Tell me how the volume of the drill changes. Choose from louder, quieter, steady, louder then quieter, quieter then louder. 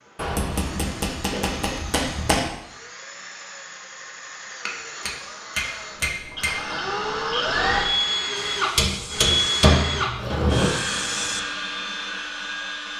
louder then quieter.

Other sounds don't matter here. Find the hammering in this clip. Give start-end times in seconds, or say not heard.
0.1-2.5, 4.7-6.5, 8.8-10.7.